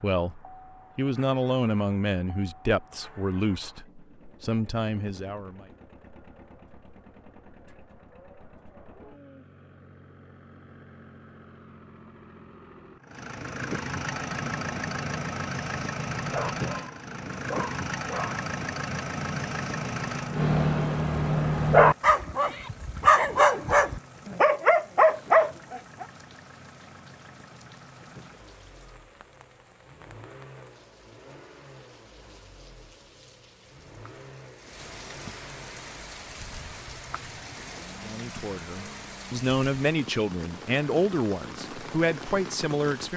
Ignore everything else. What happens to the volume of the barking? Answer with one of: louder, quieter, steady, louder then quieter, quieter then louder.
louder.